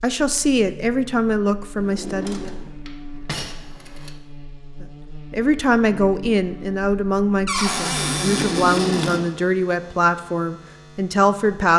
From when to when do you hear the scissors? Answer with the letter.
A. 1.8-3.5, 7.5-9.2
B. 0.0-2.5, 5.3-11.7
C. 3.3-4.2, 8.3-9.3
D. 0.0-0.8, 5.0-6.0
C.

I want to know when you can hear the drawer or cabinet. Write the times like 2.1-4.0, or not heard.
1.8-3.5, 7.5-9.2.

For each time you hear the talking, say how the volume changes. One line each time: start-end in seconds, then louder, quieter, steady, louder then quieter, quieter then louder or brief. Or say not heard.
0.0-2.5 brief
5.3-11.7 steady.